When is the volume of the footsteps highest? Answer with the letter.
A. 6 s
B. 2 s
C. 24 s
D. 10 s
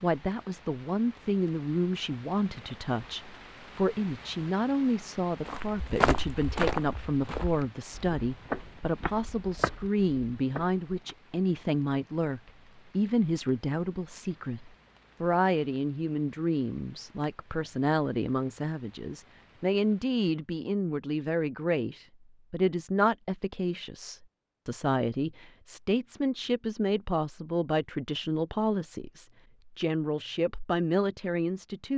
A.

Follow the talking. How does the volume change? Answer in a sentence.
The loudness of the talking stays about the same.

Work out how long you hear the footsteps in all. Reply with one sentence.
The footsteps can be heard for 6 seconds in total.